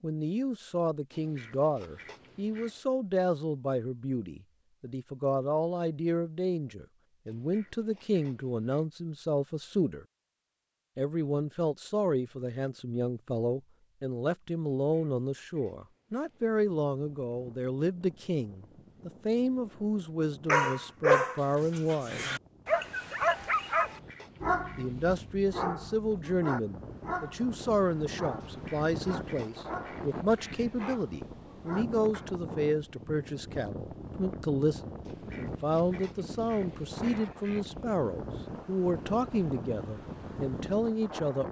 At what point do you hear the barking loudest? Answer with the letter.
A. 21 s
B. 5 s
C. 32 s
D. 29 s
A.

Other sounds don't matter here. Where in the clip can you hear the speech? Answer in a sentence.
The speech can be heard from 0.0 to 10.1 s, from 10.9 to 22.4 s and from 24.8 to 41.4 s.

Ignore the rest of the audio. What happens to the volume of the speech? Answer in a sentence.
The loudness of the speech stays about the same.